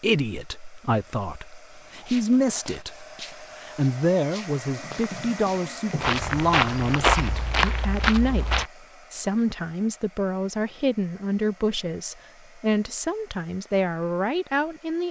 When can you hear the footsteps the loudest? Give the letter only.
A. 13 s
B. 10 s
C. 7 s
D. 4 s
C.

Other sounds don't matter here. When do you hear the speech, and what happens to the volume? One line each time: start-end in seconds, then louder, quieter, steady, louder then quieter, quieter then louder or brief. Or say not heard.
0.0-15.0 steady.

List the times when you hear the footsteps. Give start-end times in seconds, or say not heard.
1.7-8.7.